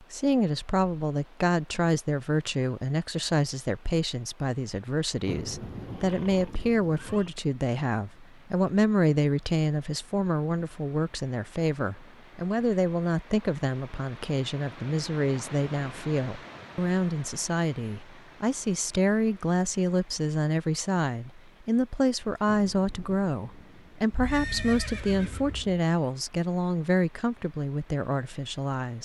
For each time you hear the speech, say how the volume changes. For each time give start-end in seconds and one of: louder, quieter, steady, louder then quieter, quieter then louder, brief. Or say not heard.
0.0-29.0 steady.